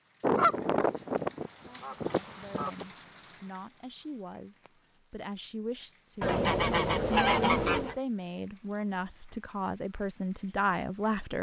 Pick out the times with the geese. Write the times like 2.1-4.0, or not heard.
0.2-2.9, 6.2-8.0.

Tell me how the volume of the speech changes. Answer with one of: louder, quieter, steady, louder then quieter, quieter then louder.
louder.